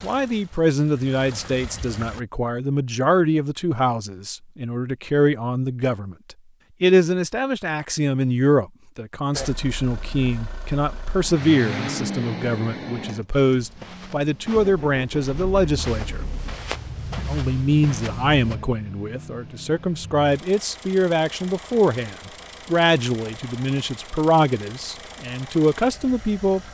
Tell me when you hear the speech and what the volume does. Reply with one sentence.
The speech can be heard from 0.0 to 16.2 s, at a steady volume; and from 17.1 to 26.6 s, at a steady volume.